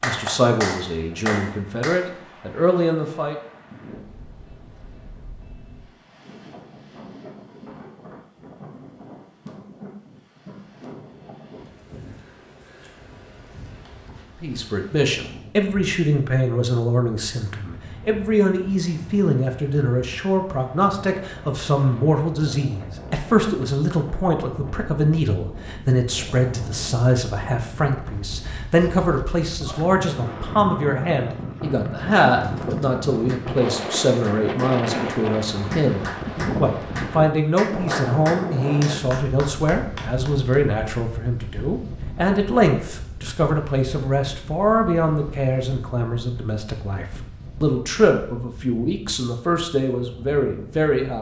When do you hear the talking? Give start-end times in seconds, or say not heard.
0.0-3.4, 14.4-51.1.